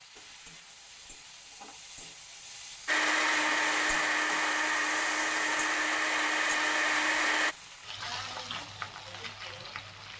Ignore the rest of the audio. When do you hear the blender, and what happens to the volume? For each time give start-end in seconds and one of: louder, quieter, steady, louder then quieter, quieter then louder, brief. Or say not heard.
2.9-7.5 steady.